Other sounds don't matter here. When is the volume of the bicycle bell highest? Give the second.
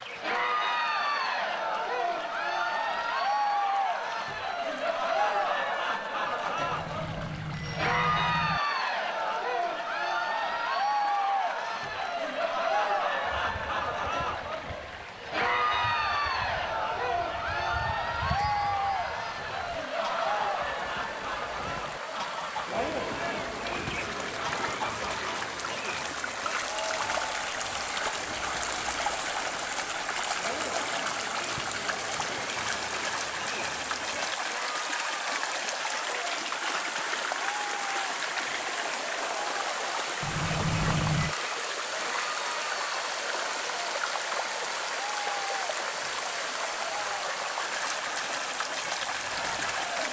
41 s.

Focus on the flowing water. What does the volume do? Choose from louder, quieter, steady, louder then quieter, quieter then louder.
louder.